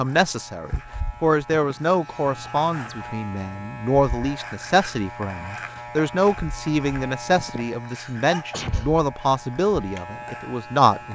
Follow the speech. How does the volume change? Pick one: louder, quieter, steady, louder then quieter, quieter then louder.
steady.